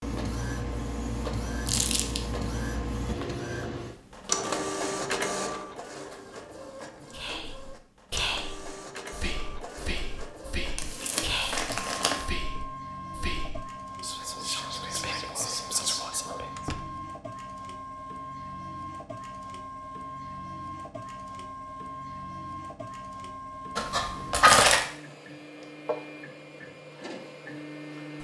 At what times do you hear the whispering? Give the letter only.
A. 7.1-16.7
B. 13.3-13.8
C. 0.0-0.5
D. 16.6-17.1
A.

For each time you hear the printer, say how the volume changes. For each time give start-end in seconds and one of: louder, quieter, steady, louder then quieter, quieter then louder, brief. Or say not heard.
0.0-28.1 quieter.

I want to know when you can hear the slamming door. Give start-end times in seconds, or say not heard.
16.6-17.1.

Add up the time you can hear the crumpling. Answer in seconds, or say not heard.
3 s.